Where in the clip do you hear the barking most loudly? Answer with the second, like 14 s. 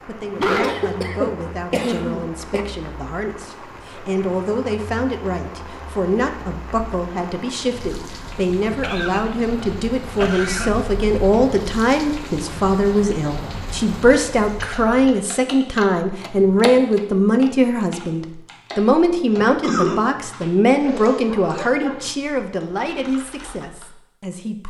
1 s.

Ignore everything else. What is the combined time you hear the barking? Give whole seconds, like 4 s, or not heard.
2 s.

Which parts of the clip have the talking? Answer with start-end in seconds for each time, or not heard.
0.1-24.6.